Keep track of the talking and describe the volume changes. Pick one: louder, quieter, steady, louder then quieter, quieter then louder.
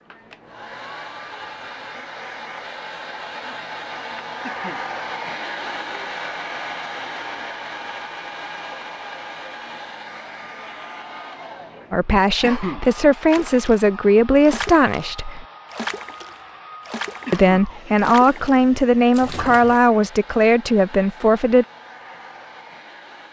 steady.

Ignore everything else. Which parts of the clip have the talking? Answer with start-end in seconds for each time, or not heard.
11.9-15.4, 17.3-21.6.